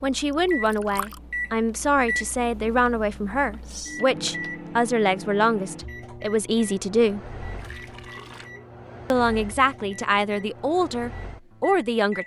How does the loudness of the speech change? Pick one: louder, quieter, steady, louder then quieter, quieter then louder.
steady.